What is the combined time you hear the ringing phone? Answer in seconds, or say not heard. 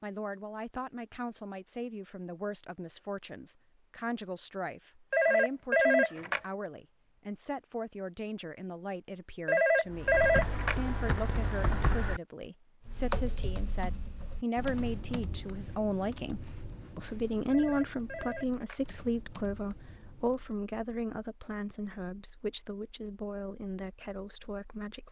4 s.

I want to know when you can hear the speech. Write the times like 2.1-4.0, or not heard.
0.0-25.0.